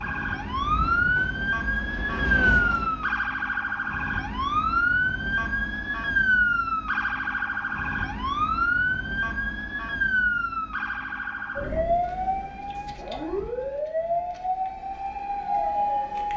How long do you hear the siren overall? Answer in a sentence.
You can hear the siren for 16 seconds altogether.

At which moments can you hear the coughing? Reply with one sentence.
You can't hear the coughing here.